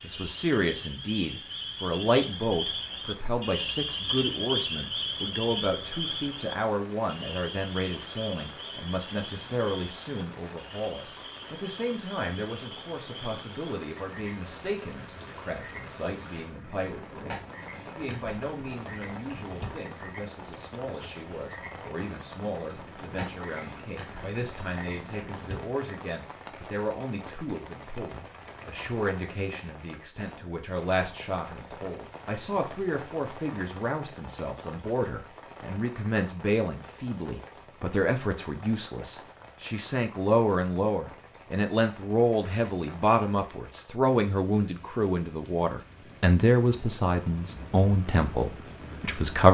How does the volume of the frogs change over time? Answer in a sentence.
The volume of the frogs goes down.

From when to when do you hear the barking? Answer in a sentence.
You can't hear the barking here.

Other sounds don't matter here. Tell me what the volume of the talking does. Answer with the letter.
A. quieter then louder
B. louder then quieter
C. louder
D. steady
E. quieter
A.